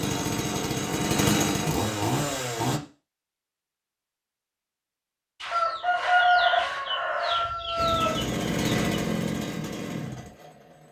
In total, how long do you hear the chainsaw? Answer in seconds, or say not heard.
6 s.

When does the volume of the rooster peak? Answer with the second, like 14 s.
6 s.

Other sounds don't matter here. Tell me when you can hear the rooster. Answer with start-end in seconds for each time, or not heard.
5.4-9.0.